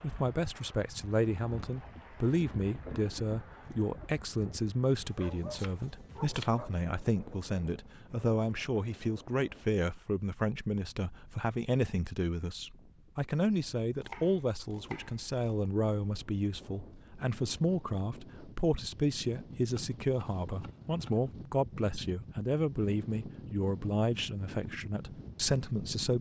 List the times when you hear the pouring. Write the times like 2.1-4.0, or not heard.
not heard.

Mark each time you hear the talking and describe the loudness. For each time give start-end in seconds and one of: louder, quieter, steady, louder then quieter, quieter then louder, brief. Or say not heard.
0.0-26.1 steady.